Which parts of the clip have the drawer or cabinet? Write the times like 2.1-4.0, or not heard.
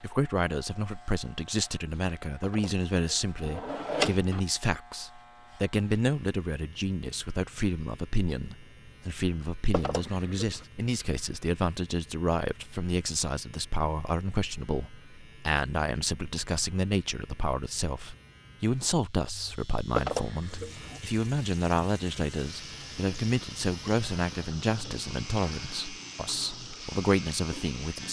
2.4-4.4, 9.7-10.7, 19.9-21.0.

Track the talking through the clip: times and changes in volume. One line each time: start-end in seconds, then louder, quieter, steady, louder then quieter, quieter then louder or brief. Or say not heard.
0.0-28.0 steady.